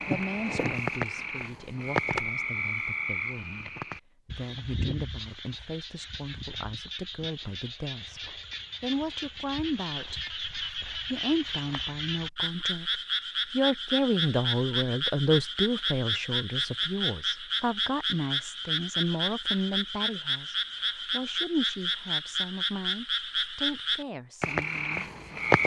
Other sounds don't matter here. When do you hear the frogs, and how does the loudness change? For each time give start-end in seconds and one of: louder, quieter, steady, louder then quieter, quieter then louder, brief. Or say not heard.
0.0-25.6 quieter then louder.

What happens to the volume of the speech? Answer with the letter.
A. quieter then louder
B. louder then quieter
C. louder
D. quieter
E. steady
B.